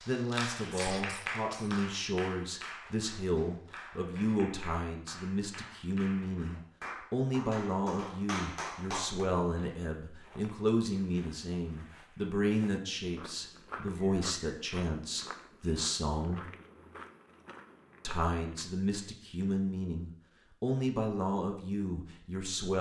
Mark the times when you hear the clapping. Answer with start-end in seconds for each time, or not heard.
0.0-9.2.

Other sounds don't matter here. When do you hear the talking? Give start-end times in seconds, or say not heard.
0.1-16.5, 18.0-22.7.